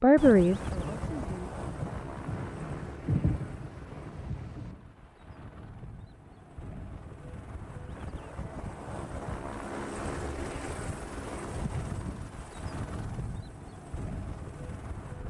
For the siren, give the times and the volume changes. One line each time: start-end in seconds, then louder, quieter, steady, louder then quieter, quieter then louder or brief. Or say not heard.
not heard.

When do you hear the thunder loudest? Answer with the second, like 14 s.
3 s.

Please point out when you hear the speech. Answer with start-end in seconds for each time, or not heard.
0.0-1.5.